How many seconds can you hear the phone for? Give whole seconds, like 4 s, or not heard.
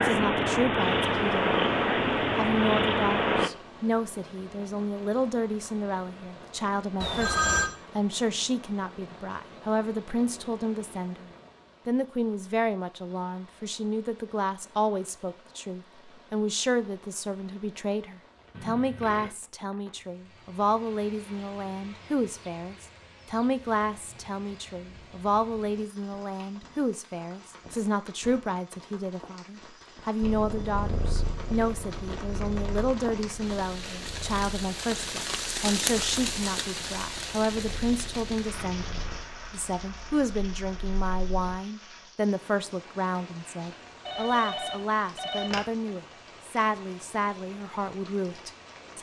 3 s.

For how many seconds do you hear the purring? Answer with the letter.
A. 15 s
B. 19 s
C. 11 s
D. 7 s
A.